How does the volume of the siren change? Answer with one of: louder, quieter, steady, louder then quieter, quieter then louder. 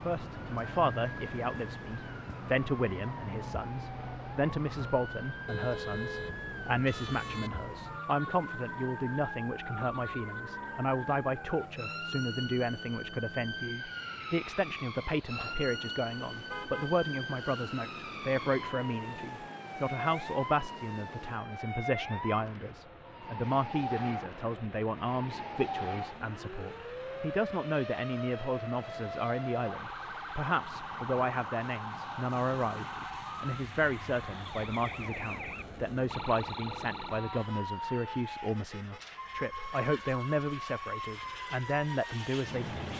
steady.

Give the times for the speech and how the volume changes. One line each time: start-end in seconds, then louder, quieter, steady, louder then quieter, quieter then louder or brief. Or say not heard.
0.1-42.9 steady.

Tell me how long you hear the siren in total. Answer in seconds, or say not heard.
43 s.